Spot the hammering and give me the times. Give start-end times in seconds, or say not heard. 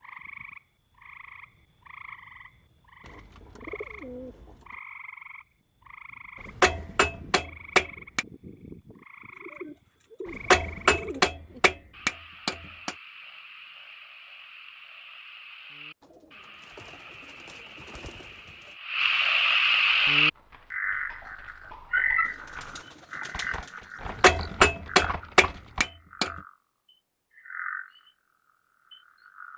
6.5-8.2, 10.3-12.9, 24.2-26.3.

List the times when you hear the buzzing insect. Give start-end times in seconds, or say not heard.
not heard.